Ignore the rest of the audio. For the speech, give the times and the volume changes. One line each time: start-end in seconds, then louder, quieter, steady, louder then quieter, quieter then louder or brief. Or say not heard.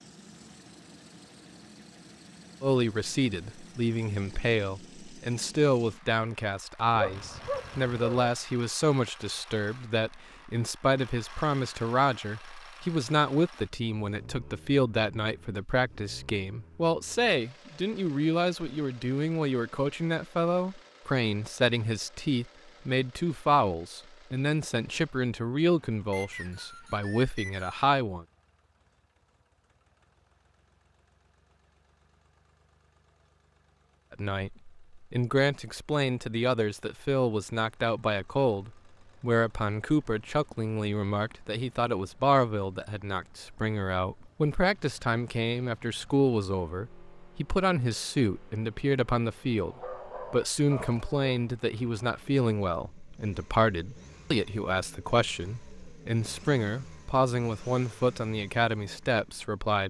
2.6-28.2 steady
34.1-59.8 steady.